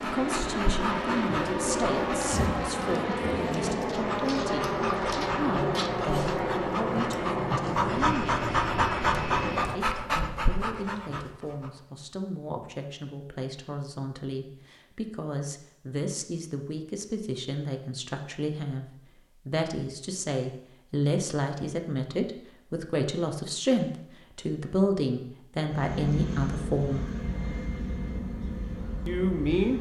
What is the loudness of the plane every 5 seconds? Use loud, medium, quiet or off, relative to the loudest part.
loud, loud, off, off, off, medium.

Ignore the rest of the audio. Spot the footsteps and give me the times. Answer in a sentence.
The footsteps can't be heard in this clip.